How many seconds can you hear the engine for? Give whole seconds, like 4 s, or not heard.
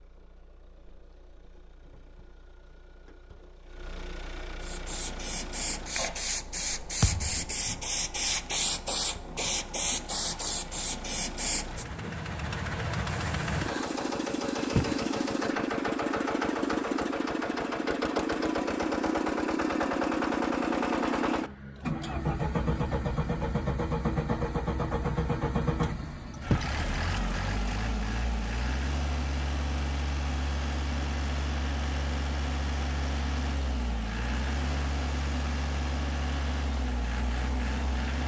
38 s.